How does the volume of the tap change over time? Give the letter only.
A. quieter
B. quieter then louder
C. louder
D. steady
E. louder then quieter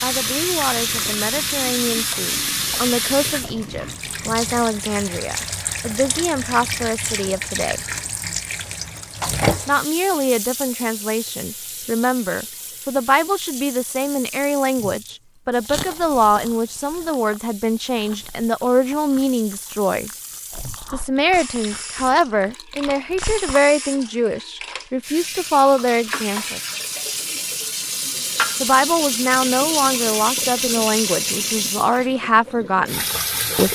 B.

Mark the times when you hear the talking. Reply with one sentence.
You can hear the talking from 0.0 to 7.8 s, from 9.7 to 20.1 s, from 20.9 to 26.6 s and from 28.6 to 33.6 s.